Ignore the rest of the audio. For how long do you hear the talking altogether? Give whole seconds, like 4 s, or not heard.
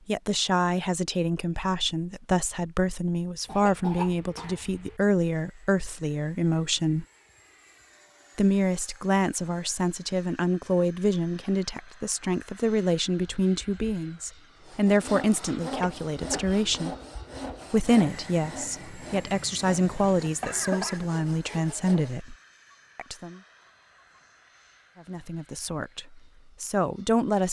23 s.